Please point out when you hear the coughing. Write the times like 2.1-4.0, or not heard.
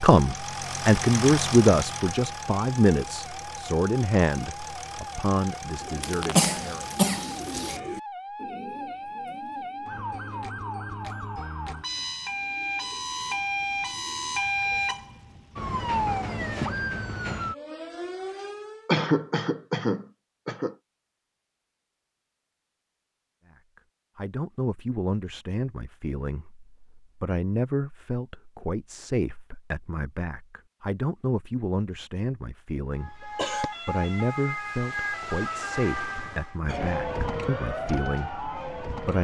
6.0-7.8, 18.9-20.8, 33.0-33.7.